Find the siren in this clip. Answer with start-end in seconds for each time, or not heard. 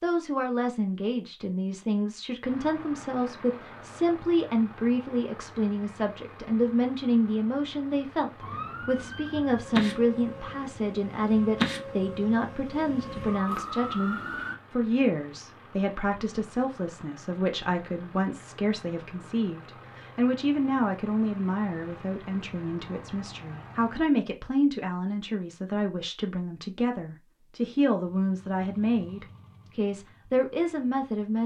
8.4-14.6.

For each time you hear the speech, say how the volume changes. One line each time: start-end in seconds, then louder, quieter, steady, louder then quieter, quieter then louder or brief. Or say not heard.
0.0-31.4 steady.